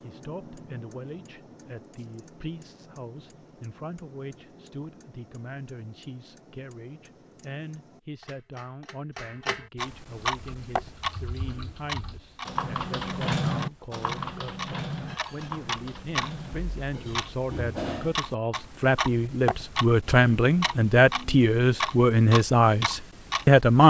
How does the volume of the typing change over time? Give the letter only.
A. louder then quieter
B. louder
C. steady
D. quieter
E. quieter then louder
A.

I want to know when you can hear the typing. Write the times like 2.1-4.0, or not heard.
10.3-16.8.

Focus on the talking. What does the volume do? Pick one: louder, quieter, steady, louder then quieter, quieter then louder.
louder.